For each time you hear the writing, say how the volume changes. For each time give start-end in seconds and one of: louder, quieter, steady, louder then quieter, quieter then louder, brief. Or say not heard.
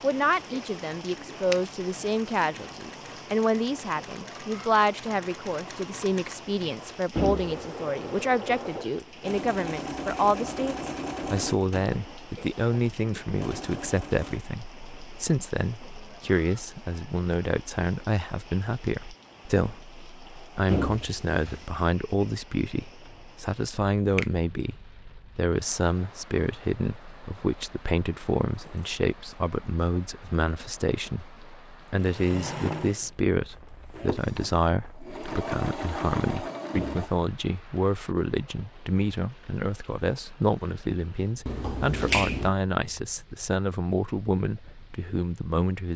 not heard.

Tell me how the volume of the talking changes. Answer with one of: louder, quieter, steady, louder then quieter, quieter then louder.
steady.